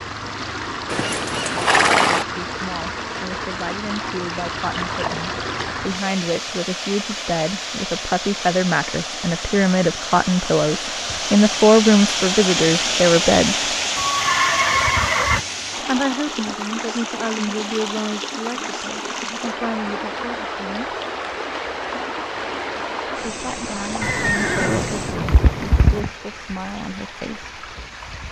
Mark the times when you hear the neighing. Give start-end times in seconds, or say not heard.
0.9-2.2, 13.9-15.4, 24.0-26.0.